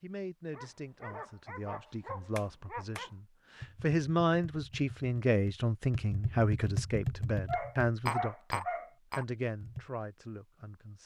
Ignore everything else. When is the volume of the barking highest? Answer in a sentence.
The loudest moment of the barking is at 8 seconds.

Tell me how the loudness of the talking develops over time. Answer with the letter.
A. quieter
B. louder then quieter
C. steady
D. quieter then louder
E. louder
B.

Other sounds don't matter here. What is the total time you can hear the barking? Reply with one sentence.
You can hear the barking for 4 seconds altogether.